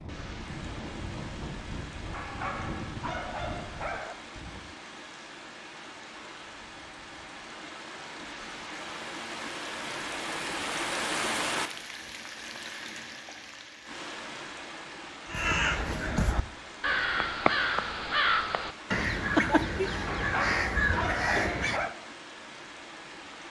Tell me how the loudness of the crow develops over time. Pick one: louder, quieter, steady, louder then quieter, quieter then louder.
steady.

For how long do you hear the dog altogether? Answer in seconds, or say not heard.
4 s.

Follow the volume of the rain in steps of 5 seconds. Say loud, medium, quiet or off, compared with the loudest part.
medium, medium, loud, medium, medium.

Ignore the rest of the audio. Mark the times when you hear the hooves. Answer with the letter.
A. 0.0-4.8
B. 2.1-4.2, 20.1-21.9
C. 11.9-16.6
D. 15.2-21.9
A.